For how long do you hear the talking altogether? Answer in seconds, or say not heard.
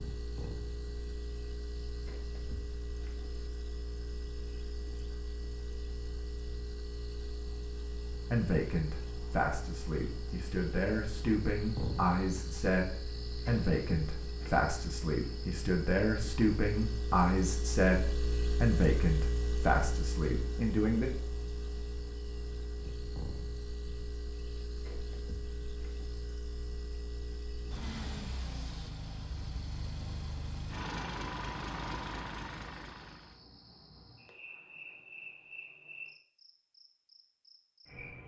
13 s.